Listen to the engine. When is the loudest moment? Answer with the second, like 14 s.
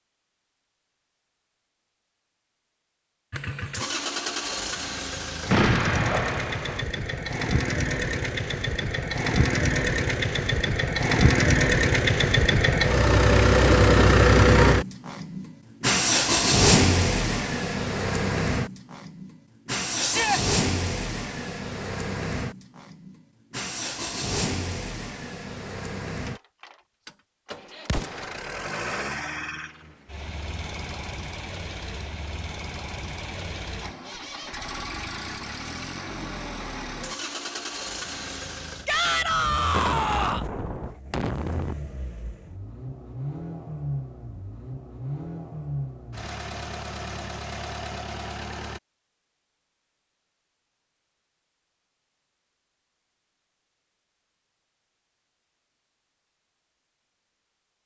14 s.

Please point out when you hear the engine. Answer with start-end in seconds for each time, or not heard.
3.3-48.8.